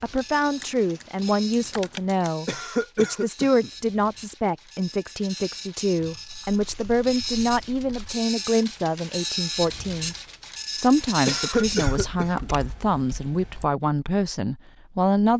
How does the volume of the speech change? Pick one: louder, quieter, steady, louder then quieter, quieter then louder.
steady.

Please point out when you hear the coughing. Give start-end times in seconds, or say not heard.
2.5-3.7, 11.2-12.5.